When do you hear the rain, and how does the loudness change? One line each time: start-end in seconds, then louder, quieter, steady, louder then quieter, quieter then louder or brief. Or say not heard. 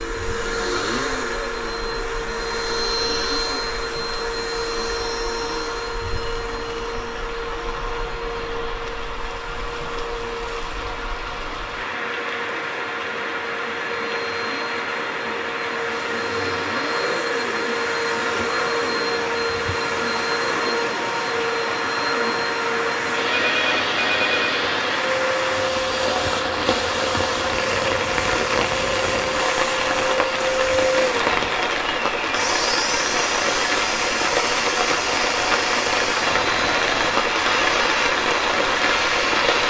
0.0-39.6 louder.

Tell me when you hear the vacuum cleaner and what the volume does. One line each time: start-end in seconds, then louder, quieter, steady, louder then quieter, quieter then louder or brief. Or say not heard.
0.0-39.6 quieter then louder.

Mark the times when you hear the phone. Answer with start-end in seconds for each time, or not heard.
23.2-24.6.